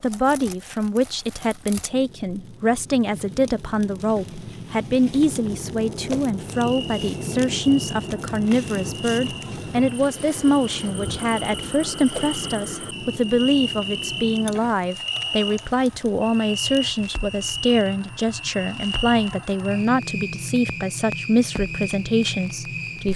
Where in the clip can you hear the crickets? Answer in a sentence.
The crickets can be heard from 6.5 to 23.1 s.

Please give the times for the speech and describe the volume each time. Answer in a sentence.
The speech can be heard from 0.0 to 23.1 s, at a steady volume.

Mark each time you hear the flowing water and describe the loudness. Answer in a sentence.
The flowing water can't be heard in this clip.